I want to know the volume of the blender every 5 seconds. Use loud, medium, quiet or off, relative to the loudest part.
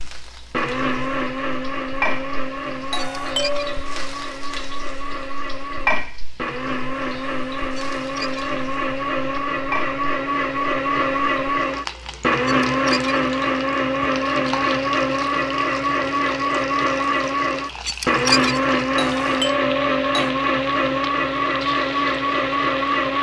medium, medium, loud, loud, loud.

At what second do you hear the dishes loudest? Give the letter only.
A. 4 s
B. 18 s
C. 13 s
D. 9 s
B.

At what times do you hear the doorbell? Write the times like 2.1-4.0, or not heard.
2.9-3.9, 18.9-20.4.